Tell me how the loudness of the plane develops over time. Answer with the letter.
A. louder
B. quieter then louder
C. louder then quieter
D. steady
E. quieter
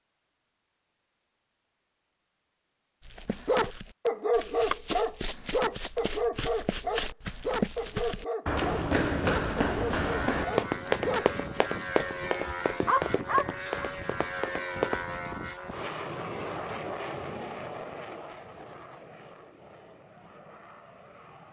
E.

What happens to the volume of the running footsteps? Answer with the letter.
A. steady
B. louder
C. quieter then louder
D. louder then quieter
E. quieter
D.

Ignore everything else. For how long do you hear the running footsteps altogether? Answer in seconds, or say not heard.
12 s.